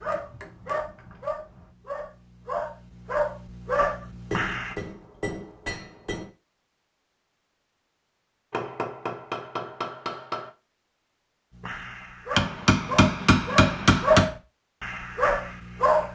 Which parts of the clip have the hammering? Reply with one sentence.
You can hear the hammering from 0.1 to 1.6 s, from 4.3 to 6.3 s, from 8.5 to 10.5 s and from 12.3 to 14.3 s.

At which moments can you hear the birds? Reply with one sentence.
You can't hear the birds here.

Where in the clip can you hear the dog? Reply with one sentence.
The dog can be heard from 0.0 to 4.8 s and from 11.5 to 16.1 s.